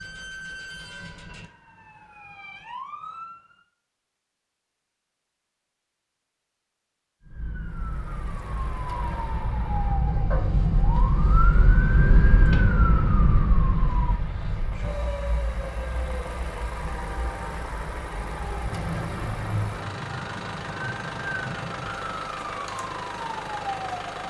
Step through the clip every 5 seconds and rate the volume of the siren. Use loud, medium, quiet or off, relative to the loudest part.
quiet, medium, loud, medium, medium.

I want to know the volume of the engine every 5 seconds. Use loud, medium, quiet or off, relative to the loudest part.
off, medium, medium, loud, loud.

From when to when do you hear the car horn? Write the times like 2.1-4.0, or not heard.
not heard.